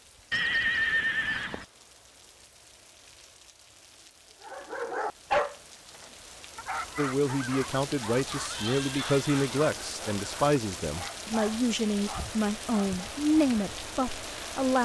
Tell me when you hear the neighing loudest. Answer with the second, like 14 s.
1 s.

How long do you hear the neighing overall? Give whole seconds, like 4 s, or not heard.
2 s.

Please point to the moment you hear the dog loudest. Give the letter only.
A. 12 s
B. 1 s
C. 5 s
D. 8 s
C.